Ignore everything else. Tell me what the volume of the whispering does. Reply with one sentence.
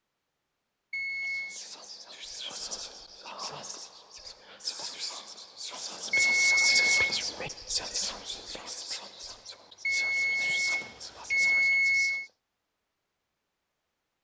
The volume of the whispering goes up, then down.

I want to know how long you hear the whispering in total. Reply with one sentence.
The whispering can be heard for 11 seconds in total.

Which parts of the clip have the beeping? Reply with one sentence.
You can hear the beeping from 0.9 to 1.6 s, from 6.1 to 7.5 s and from 9.8 to 12.2 s.